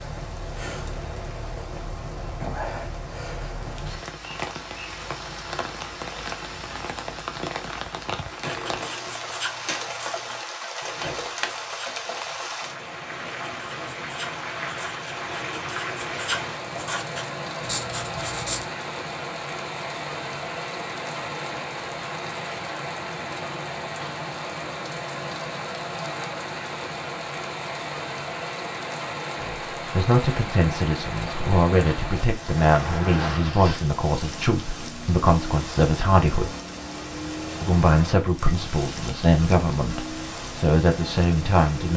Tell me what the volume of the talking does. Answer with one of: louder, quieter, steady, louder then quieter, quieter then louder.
steady.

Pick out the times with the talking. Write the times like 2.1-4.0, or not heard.
29.4-36.5, 37.6-41.9.